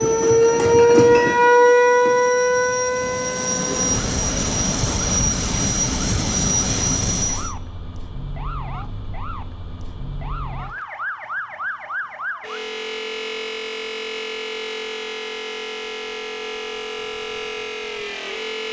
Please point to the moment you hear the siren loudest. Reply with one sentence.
The volume of the siren peaks at 1 second.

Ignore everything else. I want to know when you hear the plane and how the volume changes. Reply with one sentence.
You can hear the plane from 0.0 to 7.5 s, getting louder.